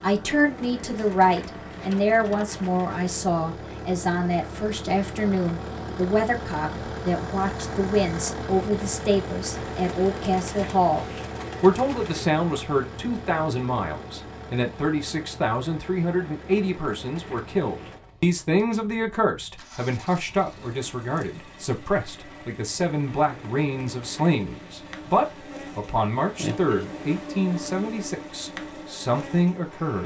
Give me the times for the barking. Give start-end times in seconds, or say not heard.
not heard.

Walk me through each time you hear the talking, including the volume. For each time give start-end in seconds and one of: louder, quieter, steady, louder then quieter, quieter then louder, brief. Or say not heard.
0.0-30.0 steady.